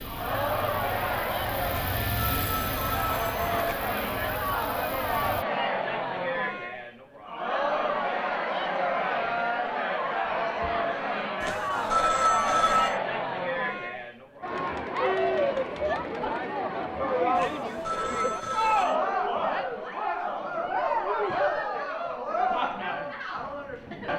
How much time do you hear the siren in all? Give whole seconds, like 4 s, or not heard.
not heard.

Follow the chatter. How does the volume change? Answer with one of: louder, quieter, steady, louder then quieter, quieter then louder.
steady.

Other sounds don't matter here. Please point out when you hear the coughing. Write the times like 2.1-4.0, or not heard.
not heard.